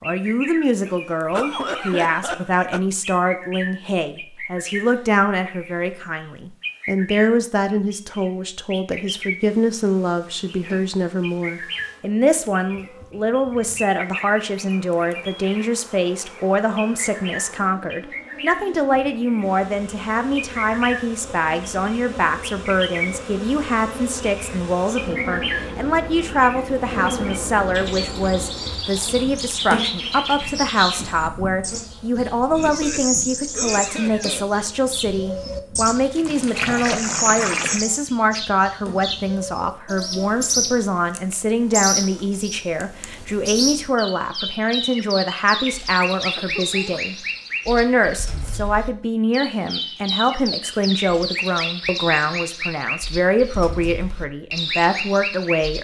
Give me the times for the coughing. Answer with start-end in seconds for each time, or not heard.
0.8-2.8, 32.5-34.5, 46.4-47.0.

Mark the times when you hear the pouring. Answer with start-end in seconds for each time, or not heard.
35.9-37.9.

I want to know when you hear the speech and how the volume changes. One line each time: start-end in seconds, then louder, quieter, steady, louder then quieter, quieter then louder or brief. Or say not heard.
0.0-55.8 steady.